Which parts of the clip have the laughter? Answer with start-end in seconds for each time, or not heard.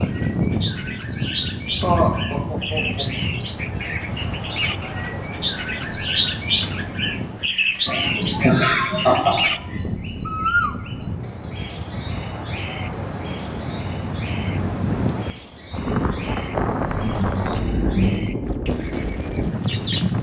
1.8-3.0, 7.8-9.8, 16.9-18.4.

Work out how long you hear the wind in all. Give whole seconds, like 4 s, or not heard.
20 s.